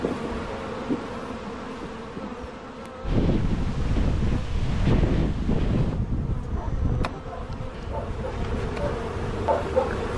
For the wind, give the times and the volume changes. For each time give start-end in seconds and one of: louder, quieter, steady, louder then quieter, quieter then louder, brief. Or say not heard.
0.0-10.1 louder then quieter.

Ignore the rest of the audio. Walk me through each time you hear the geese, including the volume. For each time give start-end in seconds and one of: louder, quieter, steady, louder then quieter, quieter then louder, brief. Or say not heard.
not heard.